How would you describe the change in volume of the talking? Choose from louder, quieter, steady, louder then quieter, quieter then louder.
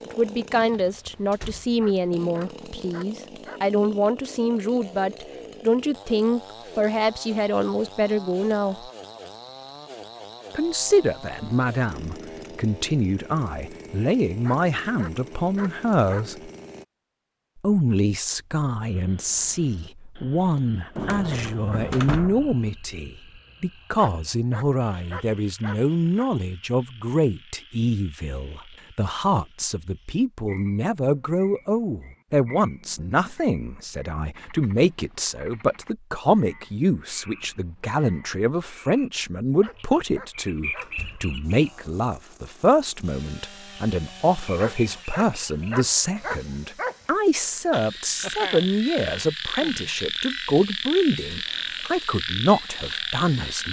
steady.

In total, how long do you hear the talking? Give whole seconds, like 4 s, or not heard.
51 s.